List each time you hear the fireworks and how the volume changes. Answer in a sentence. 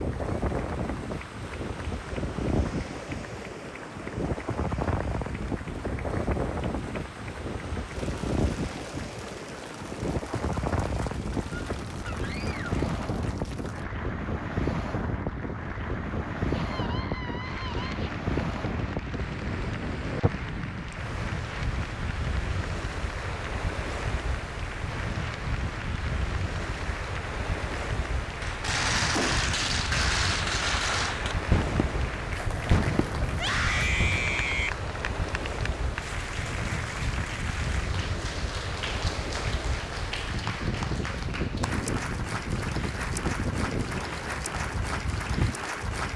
The fireworks can be heard from 28.4 to 34.2 s, getting quieter.